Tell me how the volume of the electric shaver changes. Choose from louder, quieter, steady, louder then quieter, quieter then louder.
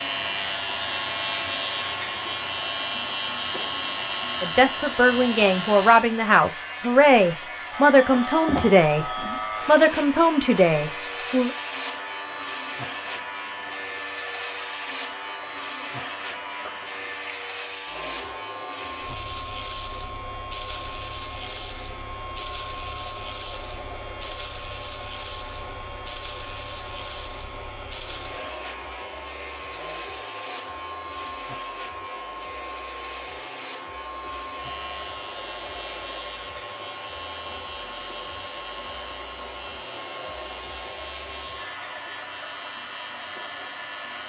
quieter.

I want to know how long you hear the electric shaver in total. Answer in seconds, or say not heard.
44 s.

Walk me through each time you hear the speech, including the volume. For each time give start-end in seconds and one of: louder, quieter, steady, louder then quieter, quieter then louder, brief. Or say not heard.
4.4-11.5 steady.